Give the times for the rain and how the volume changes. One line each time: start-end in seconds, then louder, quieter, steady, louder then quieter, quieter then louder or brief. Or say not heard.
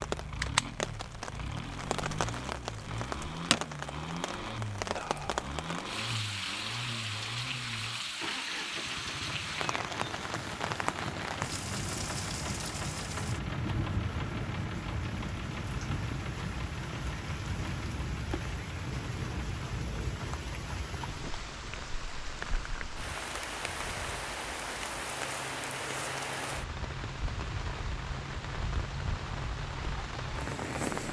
0.0-31.0 steady.